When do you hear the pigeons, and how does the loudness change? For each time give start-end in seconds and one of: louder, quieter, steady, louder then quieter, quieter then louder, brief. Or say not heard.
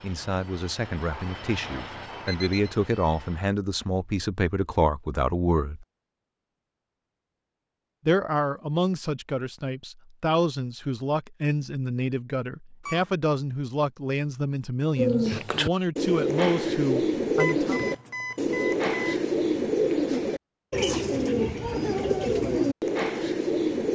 14.9-23.9 steady.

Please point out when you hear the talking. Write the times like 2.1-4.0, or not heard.
0.0-5.8, 8.1-17.8.